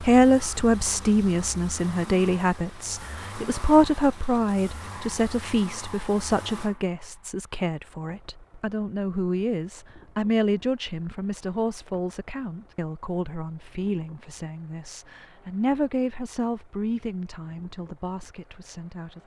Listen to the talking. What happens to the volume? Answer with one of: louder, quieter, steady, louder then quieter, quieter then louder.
quieter.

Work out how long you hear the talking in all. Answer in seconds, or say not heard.
19 s.